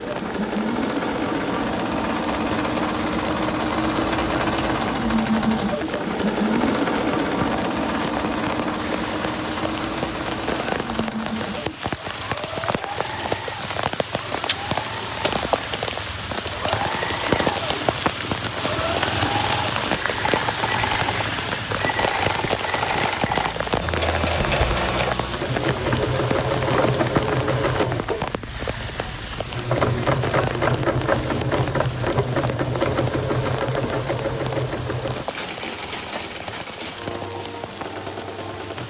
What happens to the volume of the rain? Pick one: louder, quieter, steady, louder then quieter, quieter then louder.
louder then quieter.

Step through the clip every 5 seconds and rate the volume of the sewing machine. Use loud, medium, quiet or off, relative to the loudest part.
loud, loud, medium, medium, loud, loud, loud, medium.